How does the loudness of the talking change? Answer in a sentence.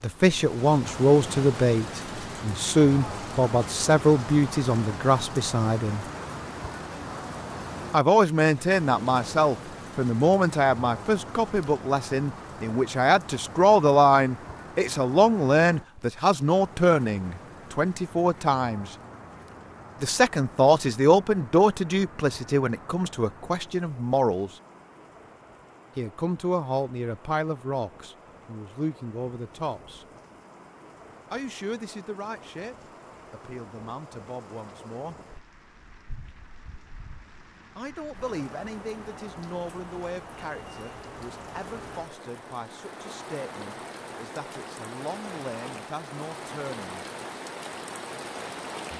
The loudness of the talking goes down.